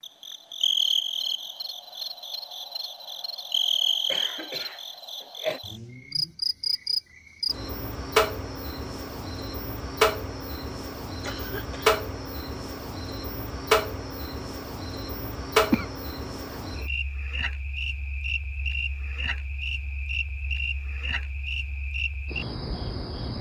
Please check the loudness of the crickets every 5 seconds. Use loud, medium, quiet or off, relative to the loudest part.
loud, loud, loud, loud, medium.